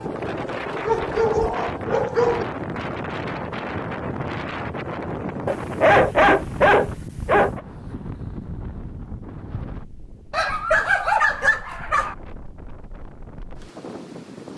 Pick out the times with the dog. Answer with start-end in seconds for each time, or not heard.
0.8-2.5, 5.5-7.6, 10.3-12.2.